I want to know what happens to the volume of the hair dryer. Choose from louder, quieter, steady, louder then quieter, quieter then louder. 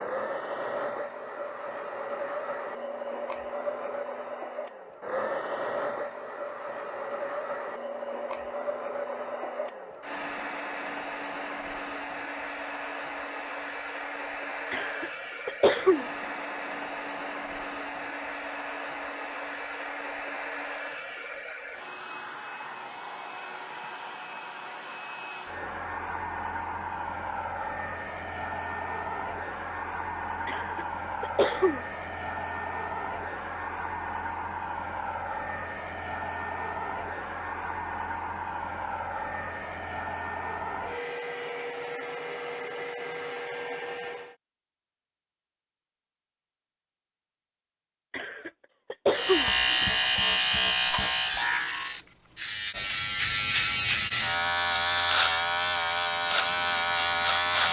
steady.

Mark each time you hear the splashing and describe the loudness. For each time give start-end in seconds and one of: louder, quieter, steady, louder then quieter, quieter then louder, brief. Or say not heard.
not heard.